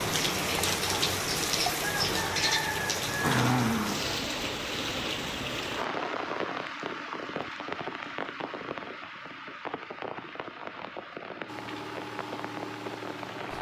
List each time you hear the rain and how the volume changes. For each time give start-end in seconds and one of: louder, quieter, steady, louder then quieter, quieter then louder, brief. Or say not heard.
0.0-13.5 quieter.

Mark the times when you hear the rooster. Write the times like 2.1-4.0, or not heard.
1.8-3.4.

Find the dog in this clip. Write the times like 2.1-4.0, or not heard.
not heard.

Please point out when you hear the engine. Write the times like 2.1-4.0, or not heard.
11.4-13.5.